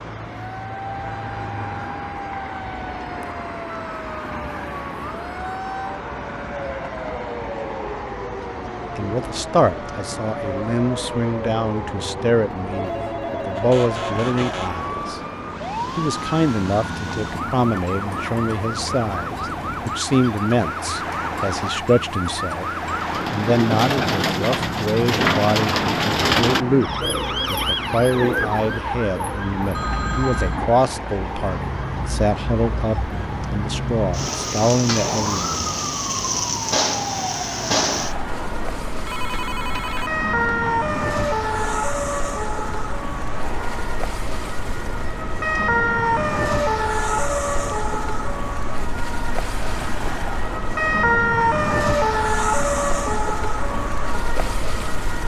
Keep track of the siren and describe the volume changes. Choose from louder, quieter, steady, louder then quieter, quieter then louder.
louder.